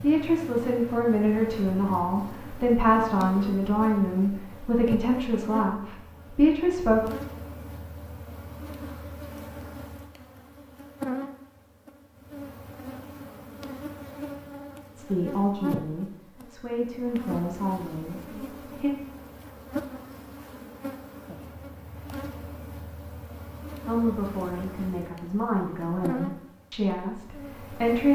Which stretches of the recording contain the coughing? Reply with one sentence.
You can't hear the coughing here.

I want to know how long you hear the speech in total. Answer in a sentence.
You can hear the speech for 15 seconds altogether.